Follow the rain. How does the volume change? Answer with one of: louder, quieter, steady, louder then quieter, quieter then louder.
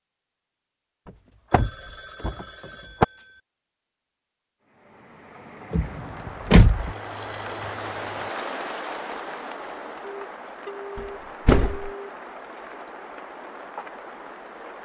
louder then quieter.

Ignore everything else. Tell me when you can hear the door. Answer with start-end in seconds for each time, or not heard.
1.5-3.0, 5.7-7.0, 10.9-11.9.